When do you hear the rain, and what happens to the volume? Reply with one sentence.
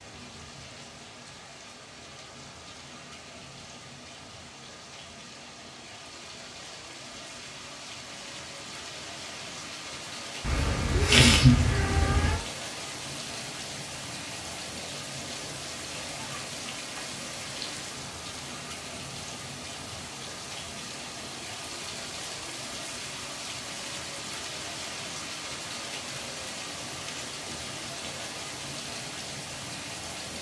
The rain can be heard from 0.0 to 30.3 s, getting louder.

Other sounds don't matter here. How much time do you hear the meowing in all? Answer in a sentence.
You can hear the meowing for 2 seconds altogether.